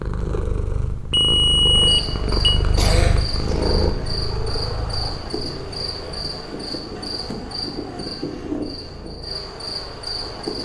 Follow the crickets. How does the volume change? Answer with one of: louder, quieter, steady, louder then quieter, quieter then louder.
steady.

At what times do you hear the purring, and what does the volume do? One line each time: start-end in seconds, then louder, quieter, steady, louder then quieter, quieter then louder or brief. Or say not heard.
0.0-10.6 quieter.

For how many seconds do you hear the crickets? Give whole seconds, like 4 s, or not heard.
9 s.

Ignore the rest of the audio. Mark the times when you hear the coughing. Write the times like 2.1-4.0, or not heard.
2.8-3.6.